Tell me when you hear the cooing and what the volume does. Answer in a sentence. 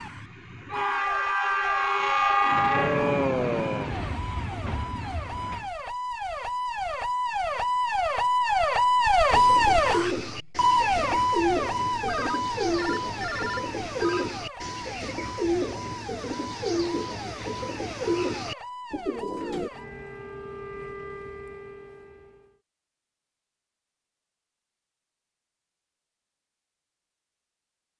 The cooing can be heard from 9.3 to 19.7 s, at a steady volume.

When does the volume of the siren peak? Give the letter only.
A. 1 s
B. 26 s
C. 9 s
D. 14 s
C.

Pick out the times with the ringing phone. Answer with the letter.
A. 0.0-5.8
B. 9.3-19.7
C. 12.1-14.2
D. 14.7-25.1
C.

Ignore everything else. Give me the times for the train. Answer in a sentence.
The train can be heard from 0.0 to 5.8 s.